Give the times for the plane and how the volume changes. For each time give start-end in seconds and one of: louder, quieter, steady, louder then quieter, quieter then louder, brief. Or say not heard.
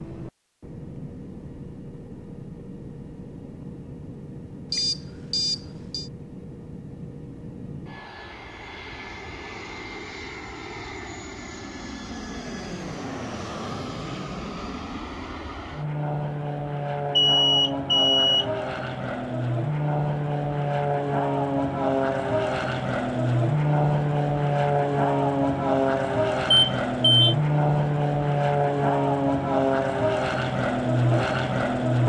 0.0-32.0 louder.